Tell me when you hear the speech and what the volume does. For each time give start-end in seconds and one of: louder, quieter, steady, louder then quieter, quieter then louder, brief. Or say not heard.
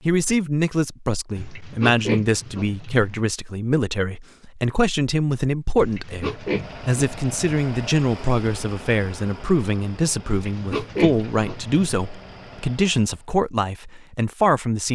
0.1-14.9 steady.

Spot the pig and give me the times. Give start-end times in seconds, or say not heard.
1.4-3.2, 5.8-7.4, 10.2-11.8.